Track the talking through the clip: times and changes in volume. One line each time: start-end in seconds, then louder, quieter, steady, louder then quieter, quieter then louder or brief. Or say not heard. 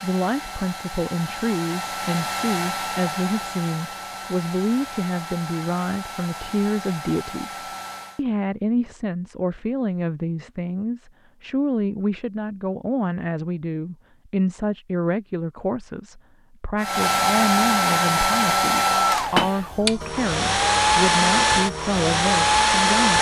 0.0-23.1 steady.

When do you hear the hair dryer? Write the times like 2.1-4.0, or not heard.
0.0-8.2, 16.8-23.1.